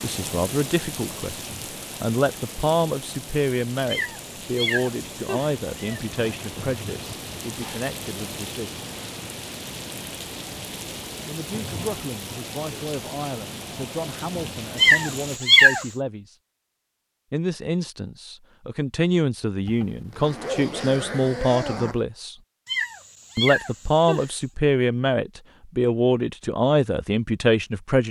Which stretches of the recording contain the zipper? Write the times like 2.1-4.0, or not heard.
19.6-22.0.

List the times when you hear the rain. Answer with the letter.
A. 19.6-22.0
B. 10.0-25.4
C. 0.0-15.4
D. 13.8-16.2
C.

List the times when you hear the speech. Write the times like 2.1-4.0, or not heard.
0.0-8.8, 11.2-16.2, 17.3-22.4, 23.4-28.0.